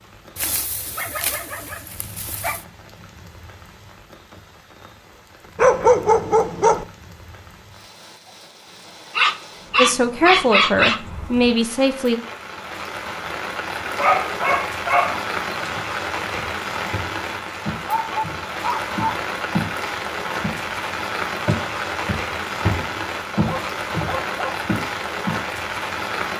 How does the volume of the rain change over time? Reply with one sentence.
The volume of the rain goes up.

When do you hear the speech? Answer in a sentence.
The speech can be heard from 9.8 to 12.2 s.